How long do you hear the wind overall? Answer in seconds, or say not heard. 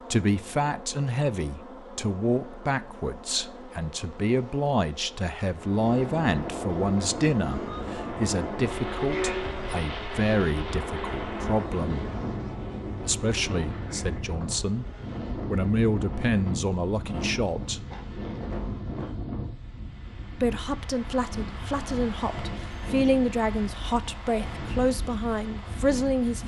21 s.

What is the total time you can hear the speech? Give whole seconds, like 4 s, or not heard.
23 s.